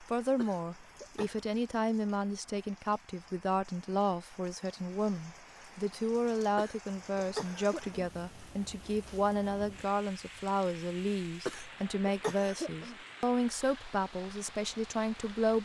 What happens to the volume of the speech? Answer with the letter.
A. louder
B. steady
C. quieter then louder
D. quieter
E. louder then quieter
B.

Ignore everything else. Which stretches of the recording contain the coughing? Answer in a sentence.
You can hear the coughing from 0.3 to 1.4 s, from 6.5 to 8.0 s and from 11.4 to 12.9 s.